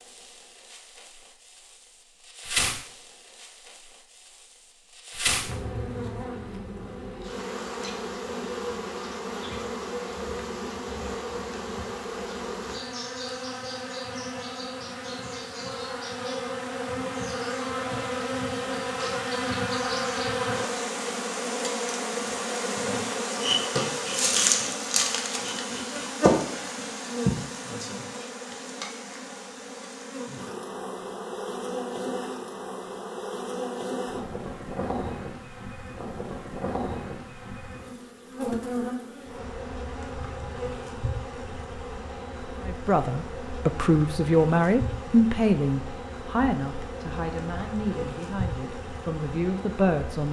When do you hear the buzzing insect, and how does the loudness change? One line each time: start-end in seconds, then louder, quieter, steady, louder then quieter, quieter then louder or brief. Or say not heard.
0.0-50.2 louder then quieter.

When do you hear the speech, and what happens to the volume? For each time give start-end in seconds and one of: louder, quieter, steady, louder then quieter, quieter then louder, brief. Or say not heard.
42.6-50.2 quieter.